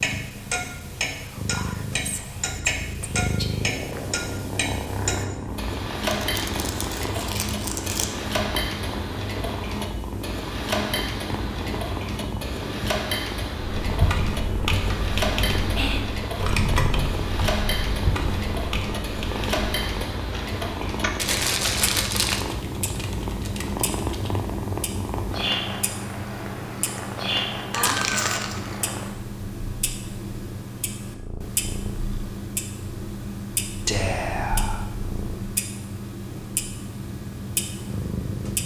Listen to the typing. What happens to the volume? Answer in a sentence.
The volume of the typing goes down.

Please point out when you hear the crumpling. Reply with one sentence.
The crumpling can be heard from 6.0 to 8.1 s, from 21.1 to 22.4 s and from 27.7 to 28.7 s.